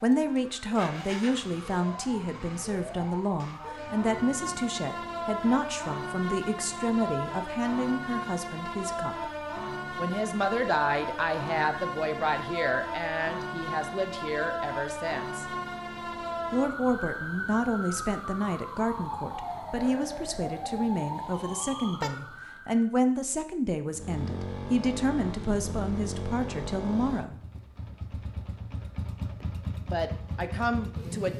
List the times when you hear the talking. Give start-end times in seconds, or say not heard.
0.0-9.3, 9.9-15.4, 16.5-27.4, 29.4-31.3.